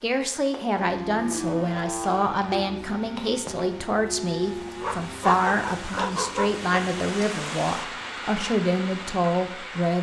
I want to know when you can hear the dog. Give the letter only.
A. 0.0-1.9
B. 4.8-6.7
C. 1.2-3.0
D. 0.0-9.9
B.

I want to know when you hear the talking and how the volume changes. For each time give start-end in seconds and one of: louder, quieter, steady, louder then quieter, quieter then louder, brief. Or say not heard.
0.0-9.9 steady.